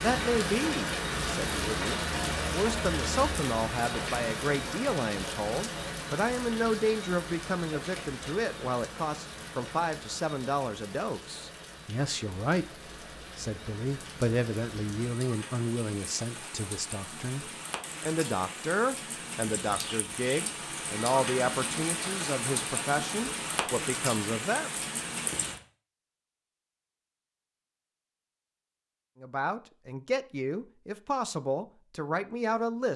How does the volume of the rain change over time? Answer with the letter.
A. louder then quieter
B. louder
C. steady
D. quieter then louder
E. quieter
D.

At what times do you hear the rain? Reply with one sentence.
You can hear the rain from 0.0 to 25.6 s.